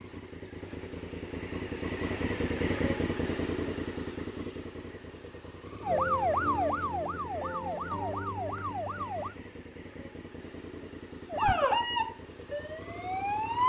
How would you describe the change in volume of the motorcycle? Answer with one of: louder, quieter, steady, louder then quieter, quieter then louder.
quieter.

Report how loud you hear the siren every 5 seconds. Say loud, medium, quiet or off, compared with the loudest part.
off, loud, loud.